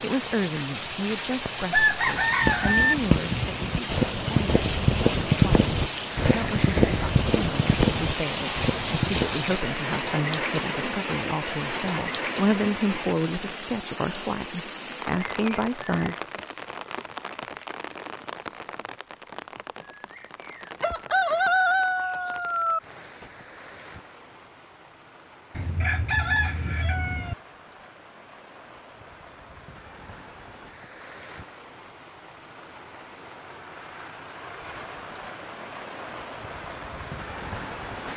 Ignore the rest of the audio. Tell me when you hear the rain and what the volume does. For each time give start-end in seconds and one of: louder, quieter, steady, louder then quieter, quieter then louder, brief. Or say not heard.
0.0-38.1 quieter then louder.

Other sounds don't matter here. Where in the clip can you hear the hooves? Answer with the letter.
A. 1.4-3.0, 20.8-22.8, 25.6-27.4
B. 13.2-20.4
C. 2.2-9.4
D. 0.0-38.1
C.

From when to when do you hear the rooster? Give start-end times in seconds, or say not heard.
1.4-3.0, 20.8-22.8, 25.6-27.4.